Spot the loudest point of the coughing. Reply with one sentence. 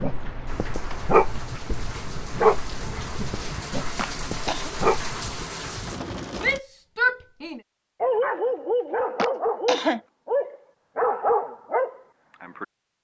The volume of the coughing peaks at 10 seconds.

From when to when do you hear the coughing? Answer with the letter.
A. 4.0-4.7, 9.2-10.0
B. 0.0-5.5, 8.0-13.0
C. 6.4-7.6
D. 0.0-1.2
A.